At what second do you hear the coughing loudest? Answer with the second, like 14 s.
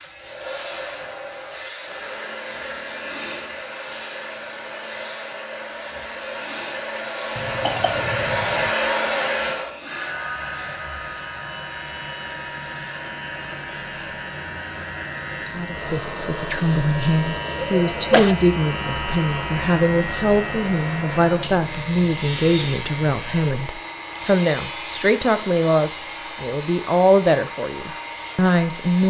18 s.